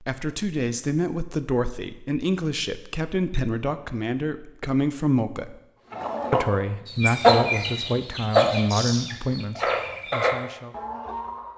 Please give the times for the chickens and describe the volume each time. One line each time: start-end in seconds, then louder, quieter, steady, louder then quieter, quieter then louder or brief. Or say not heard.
5.9-11.5 louder then quieter.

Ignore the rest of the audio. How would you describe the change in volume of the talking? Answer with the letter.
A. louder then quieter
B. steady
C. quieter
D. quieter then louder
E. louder
B.